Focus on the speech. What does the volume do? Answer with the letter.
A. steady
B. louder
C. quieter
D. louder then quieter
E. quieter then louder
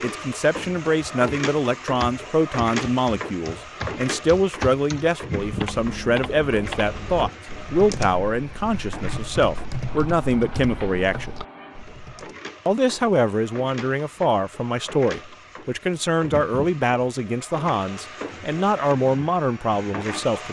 A.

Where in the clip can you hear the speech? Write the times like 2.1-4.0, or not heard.
0.0-11.3, 12.7-20.4.